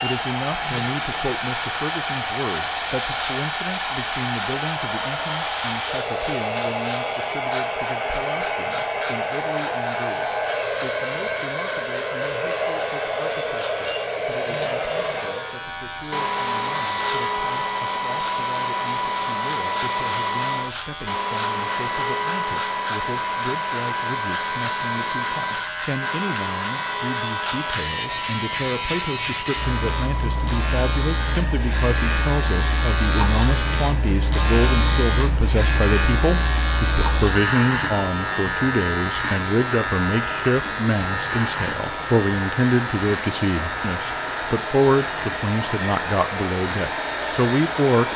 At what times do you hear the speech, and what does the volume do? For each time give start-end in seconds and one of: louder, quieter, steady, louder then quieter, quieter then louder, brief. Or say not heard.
0.0-48.1 quieter then louder.